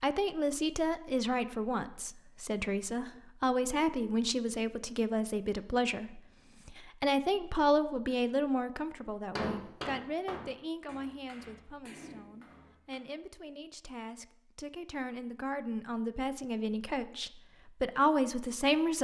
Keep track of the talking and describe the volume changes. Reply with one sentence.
The loudness of the talking goes down, then up.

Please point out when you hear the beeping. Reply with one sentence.
You can't hear the beeping here.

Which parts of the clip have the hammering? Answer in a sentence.
The hammering can be heard from 9.3 to 13.0 s.